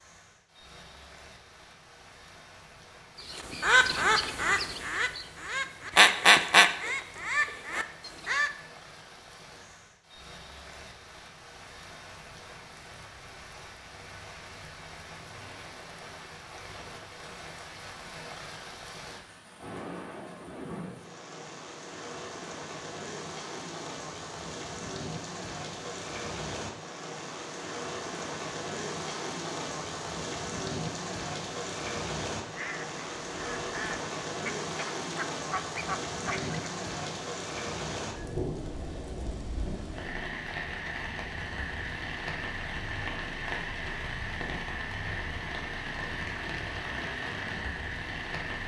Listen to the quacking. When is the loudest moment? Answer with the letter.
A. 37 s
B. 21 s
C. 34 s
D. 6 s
D.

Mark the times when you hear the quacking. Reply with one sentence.
You can hear the quacking from 3.3 to 8.5 s and from 32.5 to 36.6 s.